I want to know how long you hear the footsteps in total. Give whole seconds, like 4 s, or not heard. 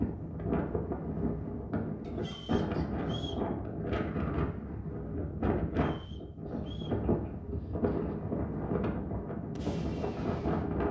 not heard.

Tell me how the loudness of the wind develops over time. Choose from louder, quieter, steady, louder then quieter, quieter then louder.
steady.